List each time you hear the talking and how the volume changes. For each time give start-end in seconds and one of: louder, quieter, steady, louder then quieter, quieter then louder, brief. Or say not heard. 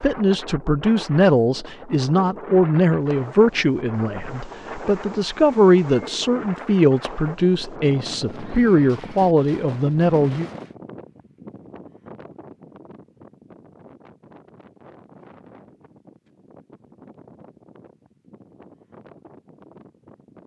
0.0-10.4 steady.